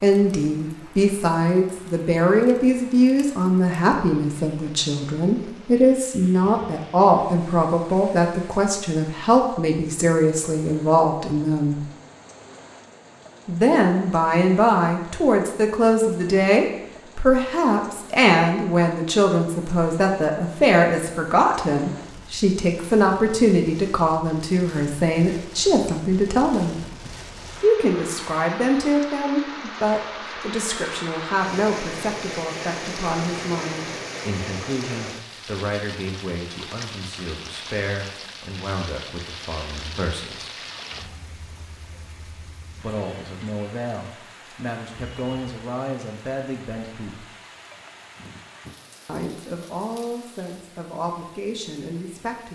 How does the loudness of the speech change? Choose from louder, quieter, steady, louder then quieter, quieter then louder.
quieter.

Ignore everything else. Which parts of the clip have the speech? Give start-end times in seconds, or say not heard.
0.0-11.8, 13.4-26.8, 27.6-40.5, 42.8-47.2, 49.0-52.5.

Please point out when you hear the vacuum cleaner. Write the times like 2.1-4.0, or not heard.
not heard.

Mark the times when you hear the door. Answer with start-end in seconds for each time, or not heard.
not heard.